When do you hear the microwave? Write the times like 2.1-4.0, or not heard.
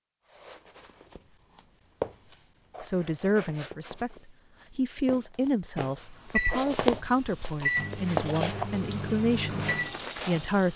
5.8-10.7.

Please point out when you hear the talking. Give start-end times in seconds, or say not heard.
2.8-10.7.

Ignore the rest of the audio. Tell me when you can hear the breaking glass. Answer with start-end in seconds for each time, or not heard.
not heard.